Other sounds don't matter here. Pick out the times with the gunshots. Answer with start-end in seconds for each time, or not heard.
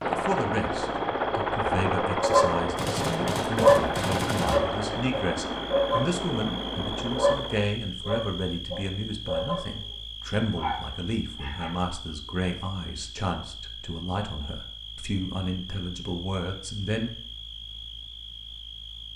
2.8-4.6.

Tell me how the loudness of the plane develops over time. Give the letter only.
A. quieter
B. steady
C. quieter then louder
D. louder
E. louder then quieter
A.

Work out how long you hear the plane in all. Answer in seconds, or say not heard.
8 s.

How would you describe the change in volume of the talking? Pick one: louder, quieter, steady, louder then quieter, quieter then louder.
steady.